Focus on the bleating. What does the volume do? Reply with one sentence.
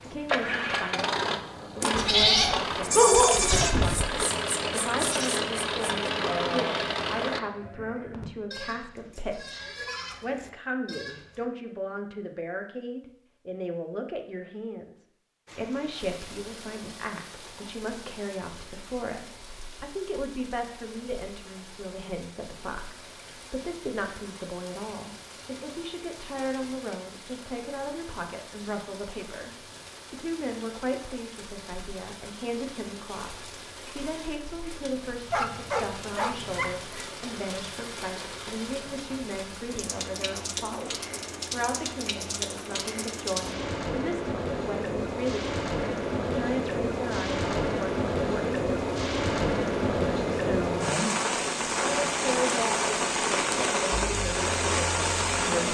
The volume of the bleating goes down.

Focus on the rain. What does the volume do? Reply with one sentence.
The loudness of the rain goes up.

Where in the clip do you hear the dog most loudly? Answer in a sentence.
The volume of the dog peaks at 3 seconds.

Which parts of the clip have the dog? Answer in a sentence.
You can hear the dog from 2.0 to 4.2 s and from 35.3 to 37.0 s.